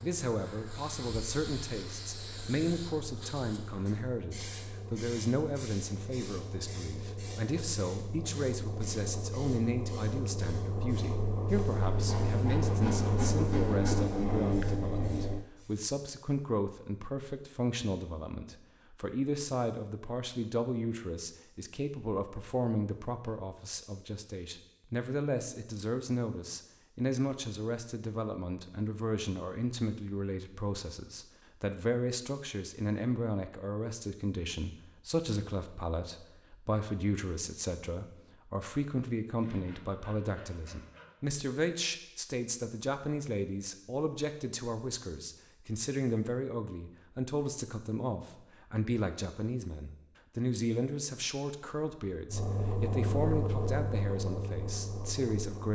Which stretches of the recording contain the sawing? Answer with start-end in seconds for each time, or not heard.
11.8-14.2, 39.4-41.1.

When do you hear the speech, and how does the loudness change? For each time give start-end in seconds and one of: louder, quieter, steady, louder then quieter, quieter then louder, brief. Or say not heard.
0.0-55.7 steady.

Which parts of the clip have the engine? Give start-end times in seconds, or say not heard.
0.0-15.4, 52.2-55.7.